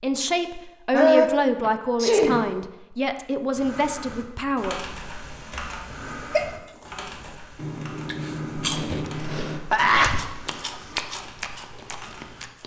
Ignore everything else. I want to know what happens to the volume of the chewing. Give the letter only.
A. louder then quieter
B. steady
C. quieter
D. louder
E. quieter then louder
A.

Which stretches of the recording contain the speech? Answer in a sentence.
You can hear the speech from 0.0 to 4.8 s.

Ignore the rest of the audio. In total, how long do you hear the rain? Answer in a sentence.
You can't hear the rain here.